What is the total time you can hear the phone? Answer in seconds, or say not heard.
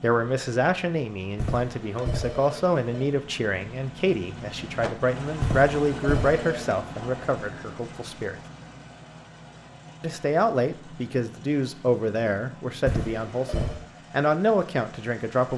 4 s.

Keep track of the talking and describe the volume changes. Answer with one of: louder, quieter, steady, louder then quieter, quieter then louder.
steady.